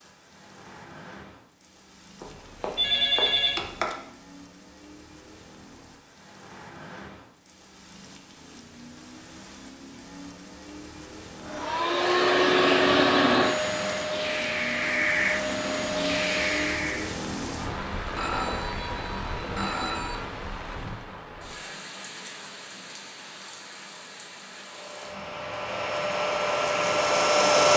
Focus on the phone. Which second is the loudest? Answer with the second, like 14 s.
3 s.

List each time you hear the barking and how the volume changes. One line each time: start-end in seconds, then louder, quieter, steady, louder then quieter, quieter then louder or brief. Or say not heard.
not heard.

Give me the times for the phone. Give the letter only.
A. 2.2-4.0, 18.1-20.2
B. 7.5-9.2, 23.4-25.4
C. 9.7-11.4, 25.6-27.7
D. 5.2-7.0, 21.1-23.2
A.